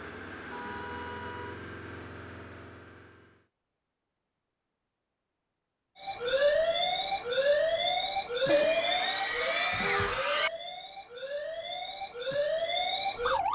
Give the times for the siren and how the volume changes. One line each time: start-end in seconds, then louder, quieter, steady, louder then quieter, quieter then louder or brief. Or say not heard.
6.0-13.4 quieter then louder.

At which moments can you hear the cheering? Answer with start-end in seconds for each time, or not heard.
8.4-10.5.